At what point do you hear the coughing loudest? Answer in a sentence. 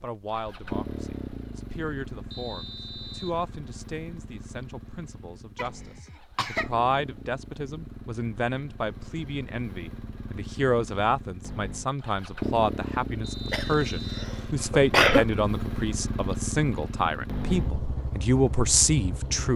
The volume of the coughing peaks at 15 seconds.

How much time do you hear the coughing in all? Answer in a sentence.
You can hear the coughing for 3 seconds altogether.